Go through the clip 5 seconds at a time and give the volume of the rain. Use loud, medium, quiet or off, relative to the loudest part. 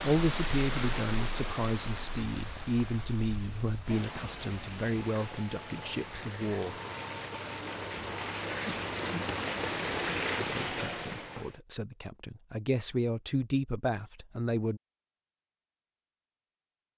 medium, loud, loud, off.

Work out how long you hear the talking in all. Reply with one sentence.
The talking can be heard for 11 seconds in total.